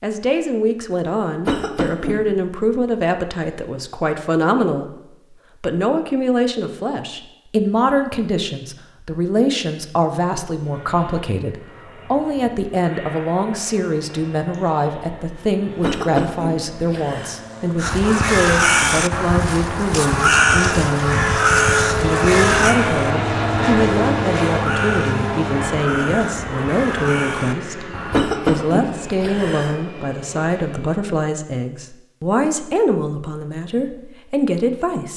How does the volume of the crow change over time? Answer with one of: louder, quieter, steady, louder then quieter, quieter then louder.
quieter.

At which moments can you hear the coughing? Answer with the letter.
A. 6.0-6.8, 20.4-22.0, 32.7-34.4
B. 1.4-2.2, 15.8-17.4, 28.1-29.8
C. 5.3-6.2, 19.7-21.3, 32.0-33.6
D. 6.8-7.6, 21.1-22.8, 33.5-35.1
B.